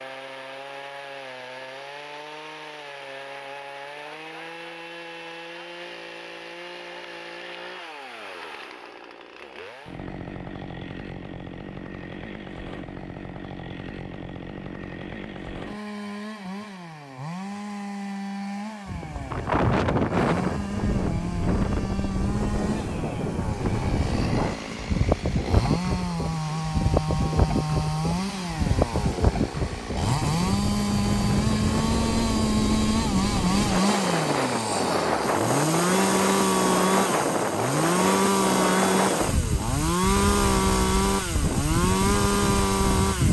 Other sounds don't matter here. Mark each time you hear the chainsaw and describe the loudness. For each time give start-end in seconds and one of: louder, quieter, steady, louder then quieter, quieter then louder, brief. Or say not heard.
0.0-43.2 louder.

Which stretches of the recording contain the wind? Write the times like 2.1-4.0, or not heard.
18.9-43.2.